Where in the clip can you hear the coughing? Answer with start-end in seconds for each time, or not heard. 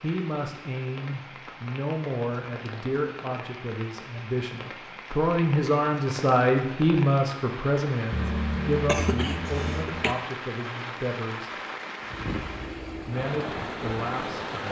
8.1-10.2.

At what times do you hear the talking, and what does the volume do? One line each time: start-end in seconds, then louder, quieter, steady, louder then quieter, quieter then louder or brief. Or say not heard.
0.0-11.5 louder then quieter
13.1-14.6 brief.